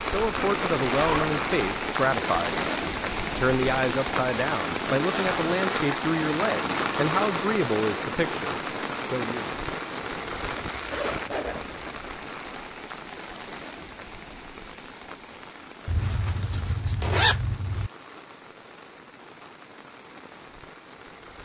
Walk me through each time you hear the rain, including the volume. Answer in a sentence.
You can hear the rain from 0.0 to 21.4 s, getting quieter.